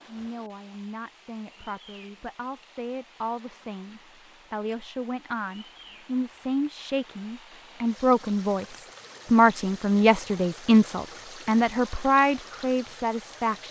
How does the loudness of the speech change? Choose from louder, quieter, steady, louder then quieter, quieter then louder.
louder.